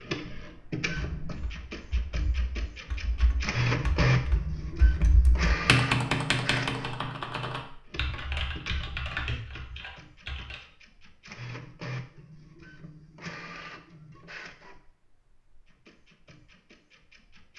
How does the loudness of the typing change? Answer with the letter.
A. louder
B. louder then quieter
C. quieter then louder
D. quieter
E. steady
B.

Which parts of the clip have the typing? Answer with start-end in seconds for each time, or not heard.
0.8-10.6.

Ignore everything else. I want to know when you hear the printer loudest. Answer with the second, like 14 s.
4 s.